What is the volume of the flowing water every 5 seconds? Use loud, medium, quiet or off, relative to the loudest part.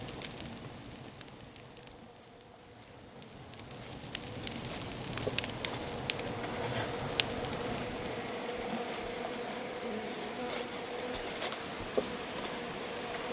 quiet, loud, loud.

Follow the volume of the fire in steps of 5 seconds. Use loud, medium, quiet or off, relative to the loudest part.
medium, loud, off.